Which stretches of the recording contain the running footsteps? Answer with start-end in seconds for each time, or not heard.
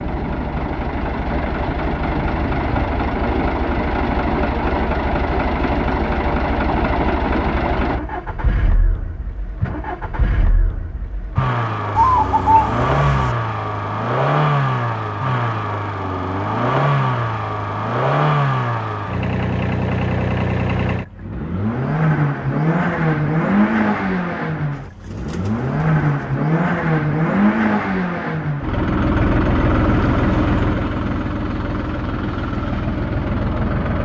not heard.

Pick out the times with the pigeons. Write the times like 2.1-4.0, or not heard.
11.9-13.3, 24.7-26.4.